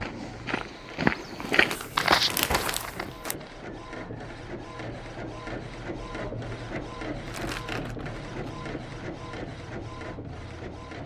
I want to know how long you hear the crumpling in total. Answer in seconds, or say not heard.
3 s.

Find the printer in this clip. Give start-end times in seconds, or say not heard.
0.0-11.0.